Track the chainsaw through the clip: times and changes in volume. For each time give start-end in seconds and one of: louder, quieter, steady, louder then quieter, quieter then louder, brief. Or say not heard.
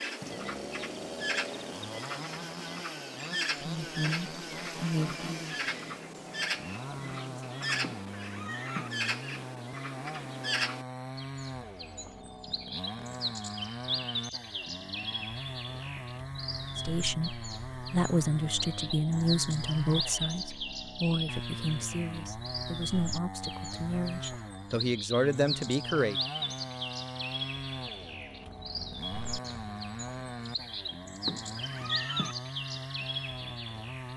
0.0-34.1 steady.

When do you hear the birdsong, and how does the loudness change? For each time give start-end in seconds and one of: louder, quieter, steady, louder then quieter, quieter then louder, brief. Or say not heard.
0.0-34.1 steady.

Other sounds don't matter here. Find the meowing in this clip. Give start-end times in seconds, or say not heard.
7.8-8.9, 31.2-32.4.